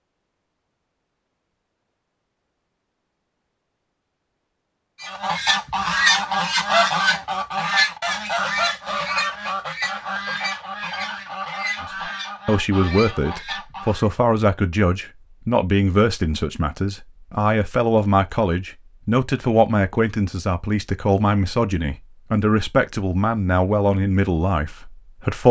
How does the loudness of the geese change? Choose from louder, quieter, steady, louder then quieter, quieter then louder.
quieter.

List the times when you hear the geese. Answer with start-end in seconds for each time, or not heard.
5.0-14.1.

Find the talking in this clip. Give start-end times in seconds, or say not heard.
12.4-25.4.